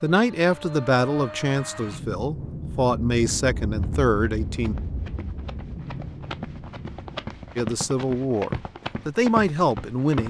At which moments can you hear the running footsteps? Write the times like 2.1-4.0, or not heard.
3.8-10.2.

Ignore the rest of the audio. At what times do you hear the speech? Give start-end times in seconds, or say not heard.
0.0-4.8, 7.5-10.2.